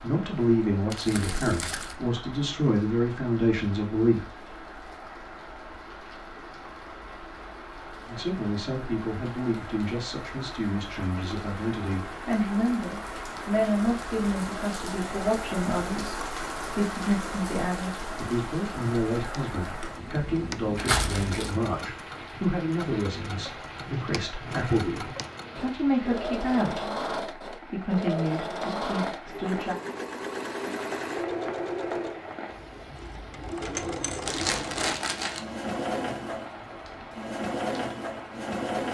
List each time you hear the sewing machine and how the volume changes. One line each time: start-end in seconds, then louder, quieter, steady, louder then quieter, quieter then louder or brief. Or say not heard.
19.1-38.9 louder.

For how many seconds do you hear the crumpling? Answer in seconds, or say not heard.
3 s.